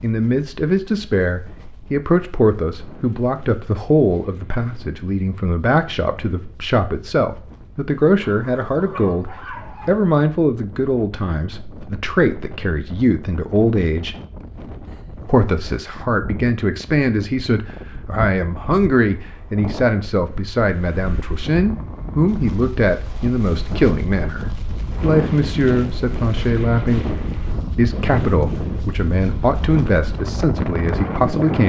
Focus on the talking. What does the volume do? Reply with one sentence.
The loudness of the talking stays about the same.